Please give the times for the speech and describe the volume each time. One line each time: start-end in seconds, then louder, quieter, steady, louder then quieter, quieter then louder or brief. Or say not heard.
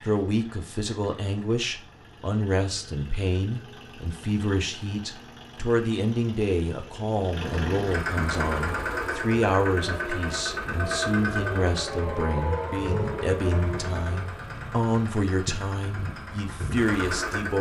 0.0-17.5 steady.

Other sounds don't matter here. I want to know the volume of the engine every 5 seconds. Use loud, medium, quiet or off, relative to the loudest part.
quiet, loud, loud, loud.